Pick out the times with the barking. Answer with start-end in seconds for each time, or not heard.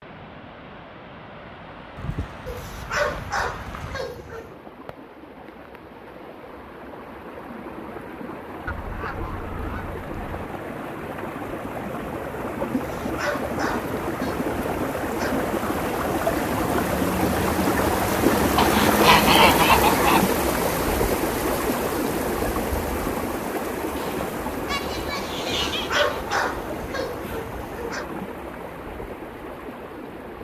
2.5-4.5, 12.7-15.4, 25.7-28.1.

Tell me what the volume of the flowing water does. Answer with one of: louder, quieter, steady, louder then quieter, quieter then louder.
louder then quieter.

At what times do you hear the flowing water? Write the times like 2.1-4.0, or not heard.
0.0-30.3.